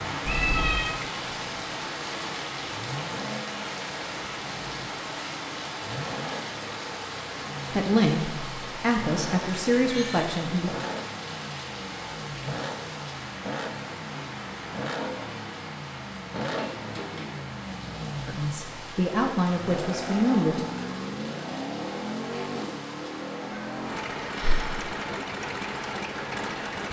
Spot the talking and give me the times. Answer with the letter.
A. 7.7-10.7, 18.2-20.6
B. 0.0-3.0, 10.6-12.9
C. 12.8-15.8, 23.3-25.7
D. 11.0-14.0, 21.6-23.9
A.